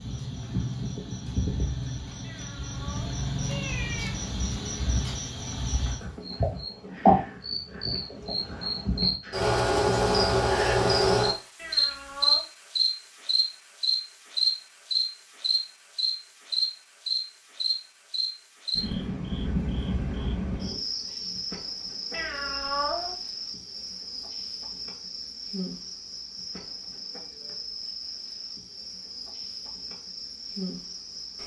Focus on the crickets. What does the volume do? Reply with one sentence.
The loudness of the crickets goes up, then down.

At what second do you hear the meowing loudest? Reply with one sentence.
The loudest moment of the meowing is at 23 seconds.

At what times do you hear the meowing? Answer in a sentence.
You can hear the meowing from 2.2 to 4.1 s, from 11.6 to 12.4 s and from 22.1 to 23.1 s.